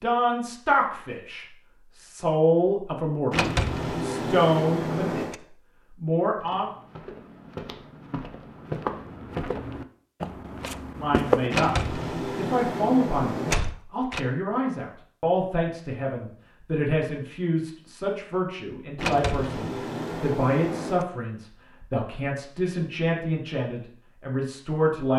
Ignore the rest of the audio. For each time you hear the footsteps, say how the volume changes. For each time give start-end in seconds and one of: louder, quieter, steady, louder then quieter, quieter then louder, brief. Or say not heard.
6.3-11.5 louder then quieter.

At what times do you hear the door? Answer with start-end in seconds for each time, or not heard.
3.3-5.3, 11.5-14.2, 18.9-21.1.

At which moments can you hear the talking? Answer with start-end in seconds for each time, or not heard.
0.0-3.4, 4.0-6.7, 10.9-25.1.